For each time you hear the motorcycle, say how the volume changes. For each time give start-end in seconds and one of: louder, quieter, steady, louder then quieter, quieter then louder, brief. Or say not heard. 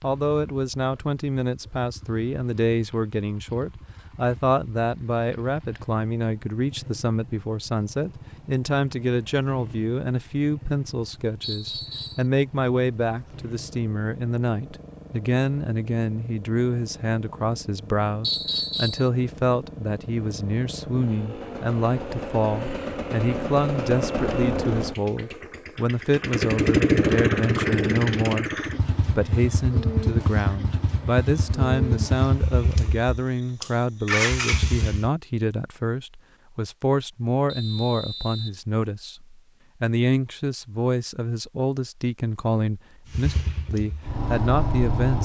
0.0-35.1 louder
43.1-45.2 brief.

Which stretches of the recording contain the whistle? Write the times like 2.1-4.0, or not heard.
11.4-12.2, 18.2-19.1, 37.5-38.5.